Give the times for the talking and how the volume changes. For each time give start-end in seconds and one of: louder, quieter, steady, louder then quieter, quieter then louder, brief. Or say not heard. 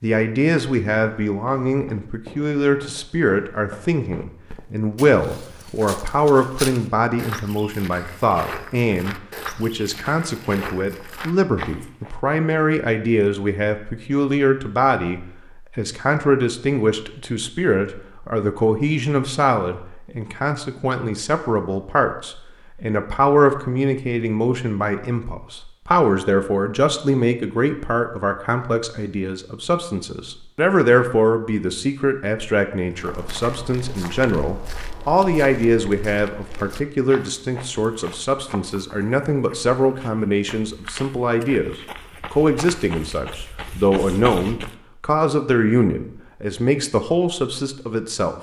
0.0-48.3 steady.